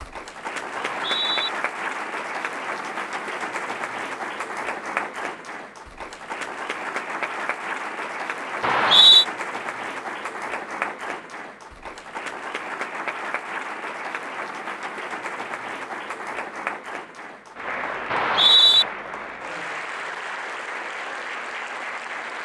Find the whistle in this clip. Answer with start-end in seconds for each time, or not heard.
0.8-1.5, 8.6-9.2, 18.1-18.9.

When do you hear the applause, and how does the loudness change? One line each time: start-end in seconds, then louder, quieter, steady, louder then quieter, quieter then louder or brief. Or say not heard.
0.0-22.4 steady.